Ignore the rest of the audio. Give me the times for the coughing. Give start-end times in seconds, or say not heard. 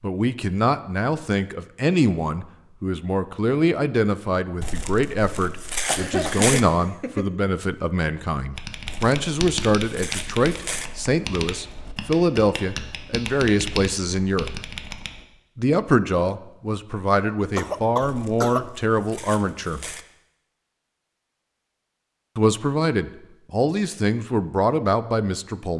5.8-7.3, 17.6-18.7.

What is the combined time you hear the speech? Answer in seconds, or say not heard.
22 s.